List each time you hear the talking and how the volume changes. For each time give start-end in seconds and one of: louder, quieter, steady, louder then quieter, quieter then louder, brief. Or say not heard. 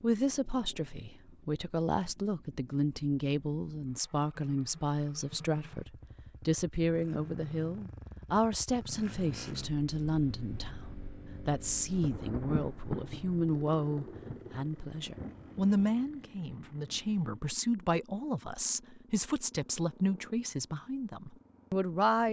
0.0-22.2 steady.